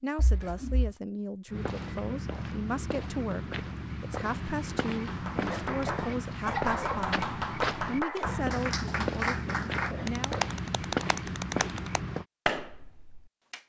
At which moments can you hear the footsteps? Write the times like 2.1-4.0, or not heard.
1.4-12.2.